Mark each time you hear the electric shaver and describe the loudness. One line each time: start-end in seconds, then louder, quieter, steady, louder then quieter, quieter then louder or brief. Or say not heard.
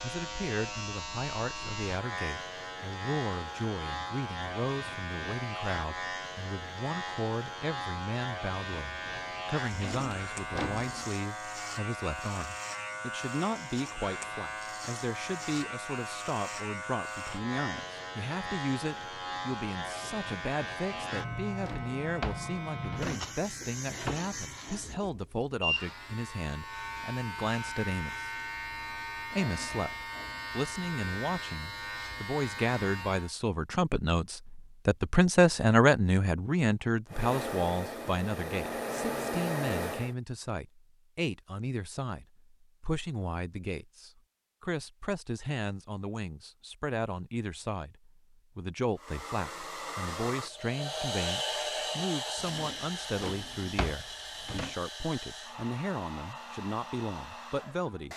0.0-33.4 steady.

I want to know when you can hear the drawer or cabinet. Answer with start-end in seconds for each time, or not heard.
9.7-11.1, 20.8-23.3, 52.4-54.8.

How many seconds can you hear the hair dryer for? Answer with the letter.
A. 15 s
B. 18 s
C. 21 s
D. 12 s
D.